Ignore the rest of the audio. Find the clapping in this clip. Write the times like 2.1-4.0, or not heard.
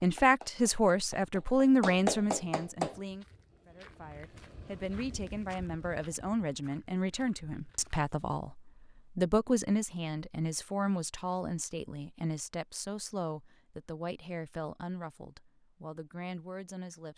0.0-3.0.